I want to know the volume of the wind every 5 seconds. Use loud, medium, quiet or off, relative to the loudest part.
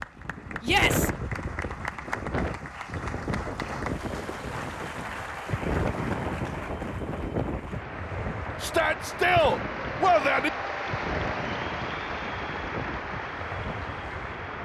loud, loud, medium.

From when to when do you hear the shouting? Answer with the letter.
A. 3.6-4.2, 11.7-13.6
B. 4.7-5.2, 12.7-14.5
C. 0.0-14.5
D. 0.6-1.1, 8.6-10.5
D.